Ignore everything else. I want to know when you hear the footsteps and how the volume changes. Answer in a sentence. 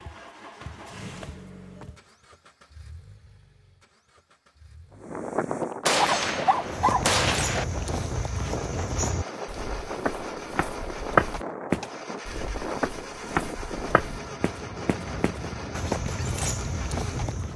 You can hear the footsteps briefly from 0.0 to 2.1 s; and from 6.6 to 17.5 s, getting louder then quieter.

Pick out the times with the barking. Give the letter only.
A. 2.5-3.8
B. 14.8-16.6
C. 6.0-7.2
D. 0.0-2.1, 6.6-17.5
C.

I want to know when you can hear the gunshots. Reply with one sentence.
You can hear the gunshots from 5.8 to 7.7 s.